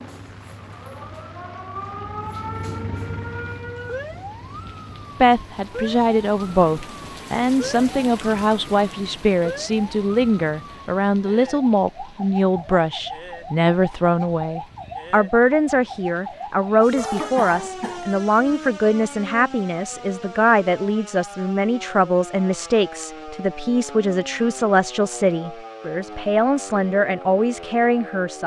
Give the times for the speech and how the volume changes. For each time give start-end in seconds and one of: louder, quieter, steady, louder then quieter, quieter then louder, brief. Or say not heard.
5.2-28.4 steady.